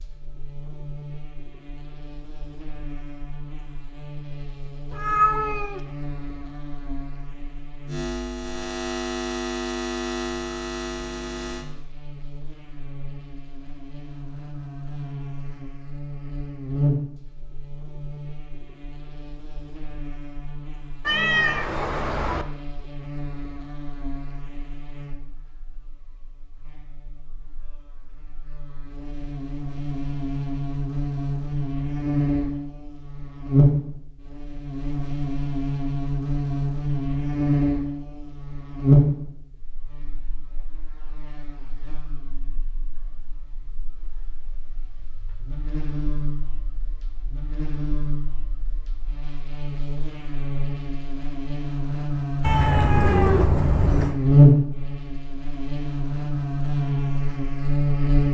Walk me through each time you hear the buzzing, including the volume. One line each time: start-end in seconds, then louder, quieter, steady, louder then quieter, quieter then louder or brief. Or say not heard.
0.0-58.2 louder.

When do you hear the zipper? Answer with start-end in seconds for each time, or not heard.
52.8-53.5.